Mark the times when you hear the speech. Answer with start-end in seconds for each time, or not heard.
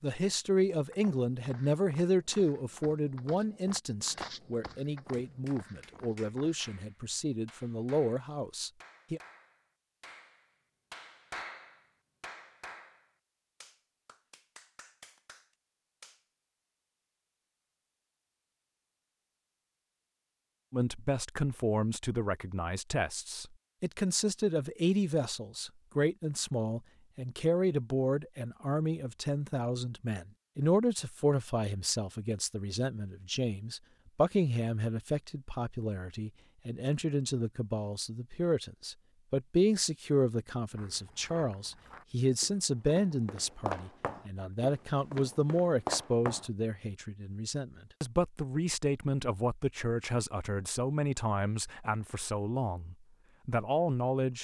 0.0-9.2, 20.7-54.3.